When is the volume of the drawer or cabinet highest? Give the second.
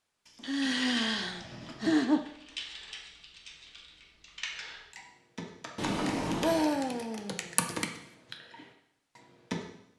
6 s.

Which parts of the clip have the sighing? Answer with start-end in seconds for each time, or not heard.
0.5-2.2, 6.4-7.5.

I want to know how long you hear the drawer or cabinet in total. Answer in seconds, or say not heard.
3 s.